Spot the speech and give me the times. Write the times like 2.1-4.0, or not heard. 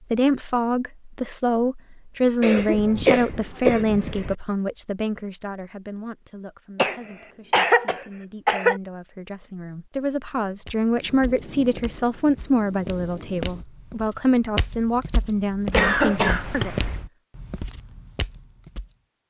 0.1-16.8.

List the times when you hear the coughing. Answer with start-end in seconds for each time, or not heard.
2.4-4.3, 6.8-8.8, 15.7-17.0.